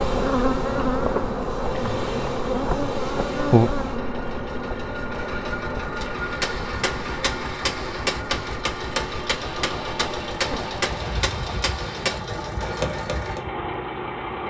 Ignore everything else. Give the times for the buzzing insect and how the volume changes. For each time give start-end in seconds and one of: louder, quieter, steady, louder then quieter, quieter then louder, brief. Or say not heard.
0.0-14.4 quieter.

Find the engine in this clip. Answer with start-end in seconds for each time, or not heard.
0.0-14.4.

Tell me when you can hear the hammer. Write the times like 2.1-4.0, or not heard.
6.0-13.4.